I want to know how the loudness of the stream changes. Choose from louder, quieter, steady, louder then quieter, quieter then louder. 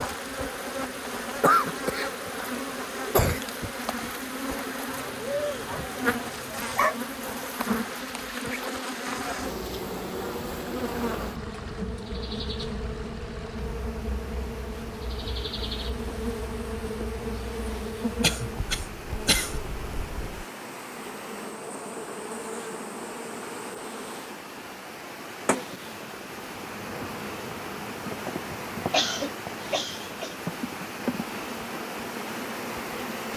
louder.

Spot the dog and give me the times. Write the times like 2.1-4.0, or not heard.
4.8-7.0.